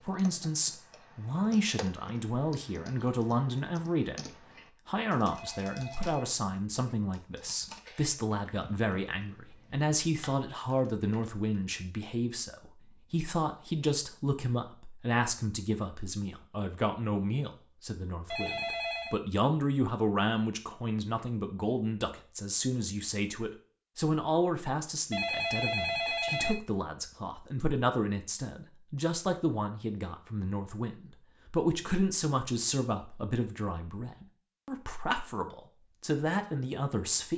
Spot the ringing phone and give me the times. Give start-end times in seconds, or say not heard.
5.3-6.3, 18.3-19.2, 25.1-26.6.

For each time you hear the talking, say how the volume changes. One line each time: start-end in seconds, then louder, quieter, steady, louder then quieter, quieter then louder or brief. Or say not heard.
0.0-37.3 steady.